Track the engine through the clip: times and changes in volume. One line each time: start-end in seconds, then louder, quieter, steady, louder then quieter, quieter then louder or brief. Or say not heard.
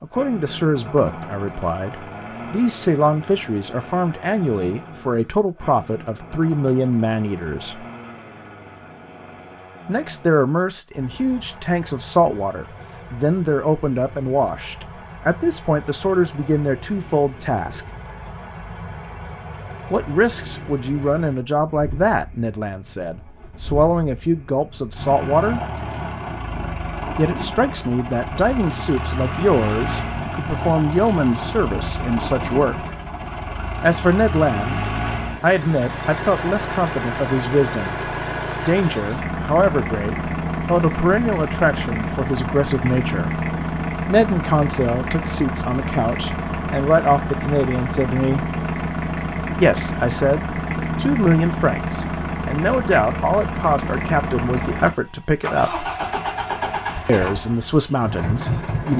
0.0-58.9 louder.